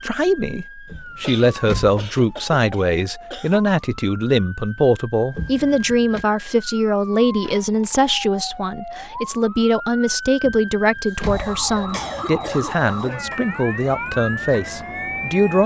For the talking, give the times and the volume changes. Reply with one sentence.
The talking can be heard from 0.0 to 15.6 s, at a steady volume.